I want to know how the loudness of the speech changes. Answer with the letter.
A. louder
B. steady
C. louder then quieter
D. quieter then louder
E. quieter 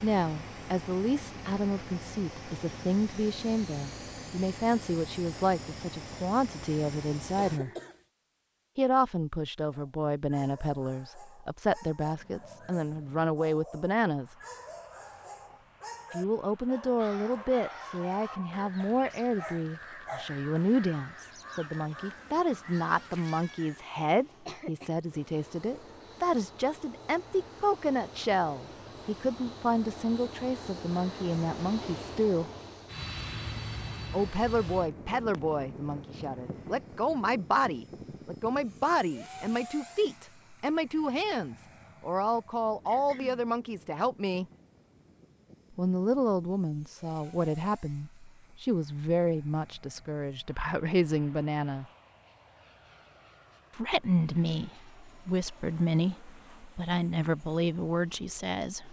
B.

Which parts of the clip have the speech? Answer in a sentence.
You can hear the speech from 0.0 to 7.7 s, from 8.8 to 14.3 s, from 16.1 to 32.5 s, from 34.1 to 44.5 s, from 45.8 to 51.9 s and from 53.8 to 58.8 s.